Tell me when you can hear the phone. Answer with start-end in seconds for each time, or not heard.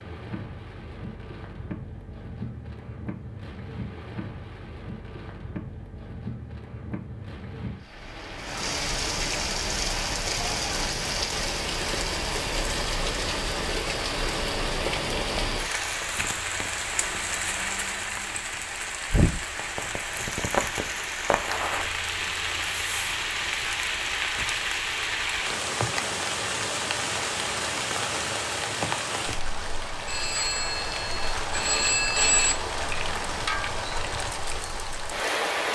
30.1-32.5.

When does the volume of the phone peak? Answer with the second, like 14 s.
32 s.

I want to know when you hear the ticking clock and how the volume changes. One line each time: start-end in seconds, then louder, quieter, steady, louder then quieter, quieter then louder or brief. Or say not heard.
not heard.